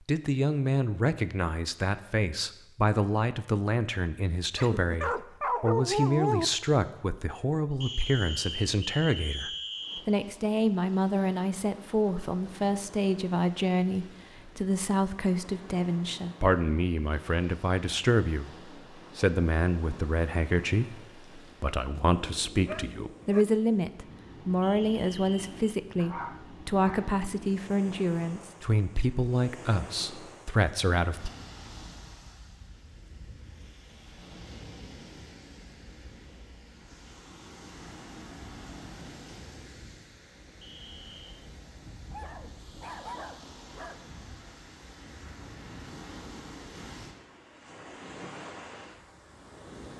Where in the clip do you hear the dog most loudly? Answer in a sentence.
The volume of the dog peaks at 6 seconds.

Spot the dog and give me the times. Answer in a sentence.
The dog can be heard from 4.5 to 6.5 s, from 21.9 to 23.4 s, from 25.9 to 27.1 s and from 42.1 to 44.0 s.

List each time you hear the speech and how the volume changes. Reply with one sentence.
You can hear the speech from 0.1 to 31.3 s, at a steady volume.